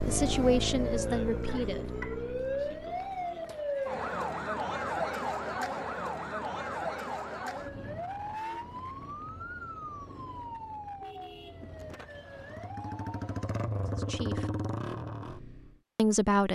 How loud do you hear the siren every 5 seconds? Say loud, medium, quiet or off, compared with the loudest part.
loud, loud, medium, off.